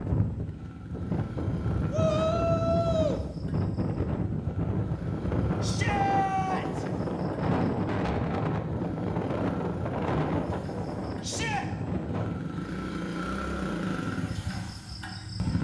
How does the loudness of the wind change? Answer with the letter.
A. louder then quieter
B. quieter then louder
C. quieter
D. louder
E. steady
E.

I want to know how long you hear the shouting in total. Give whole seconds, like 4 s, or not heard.
3 s.